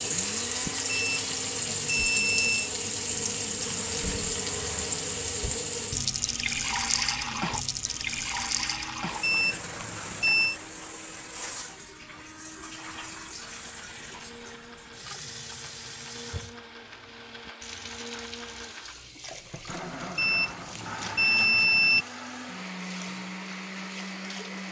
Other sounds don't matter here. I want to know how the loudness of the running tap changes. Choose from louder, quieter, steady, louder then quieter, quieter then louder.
quieter.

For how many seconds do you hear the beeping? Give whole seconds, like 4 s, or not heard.
5 s.